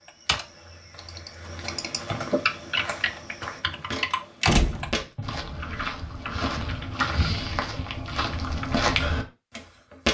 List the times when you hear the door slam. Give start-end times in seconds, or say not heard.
4.5-5.0.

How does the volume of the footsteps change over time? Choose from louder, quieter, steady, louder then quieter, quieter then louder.
louder.